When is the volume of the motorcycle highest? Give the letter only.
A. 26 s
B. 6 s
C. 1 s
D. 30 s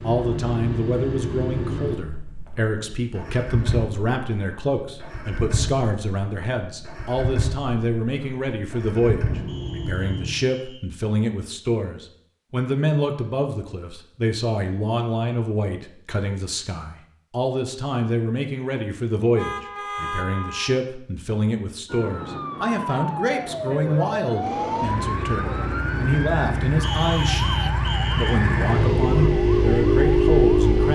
D.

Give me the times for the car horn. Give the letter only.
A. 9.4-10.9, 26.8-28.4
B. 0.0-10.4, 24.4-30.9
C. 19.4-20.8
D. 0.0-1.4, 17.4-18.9
C.